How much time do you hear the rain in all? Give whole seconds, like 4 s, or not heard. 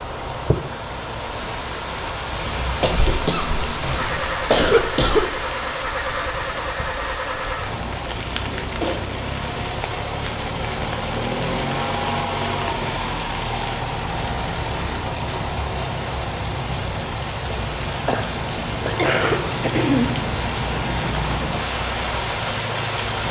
23 s.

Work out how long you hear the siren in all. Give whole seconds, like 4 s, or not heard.
not heard.